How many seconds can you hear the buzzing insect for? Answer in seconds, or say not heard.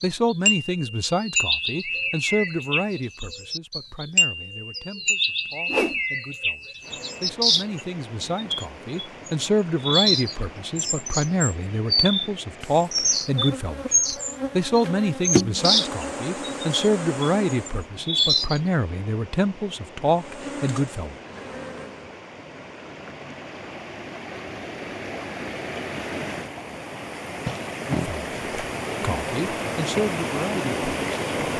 7 s.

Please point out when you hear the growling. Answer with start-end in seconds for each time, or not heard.
27.4-28.1.